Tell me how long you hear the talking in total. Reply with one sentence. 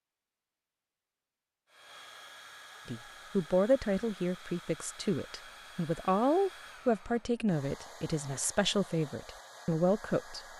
You can hear the talking for 8 seconds altogether.